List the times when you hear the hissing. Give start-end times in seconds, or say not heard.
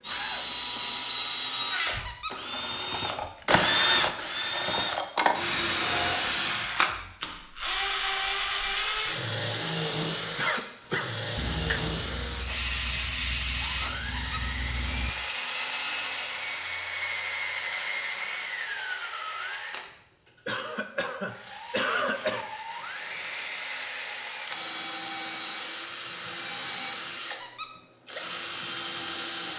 11.3-15.2.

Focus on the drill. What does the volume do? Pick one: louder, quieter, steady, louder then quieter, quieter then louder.
quieter.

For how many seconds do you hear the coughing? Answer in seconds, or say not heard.
4 s.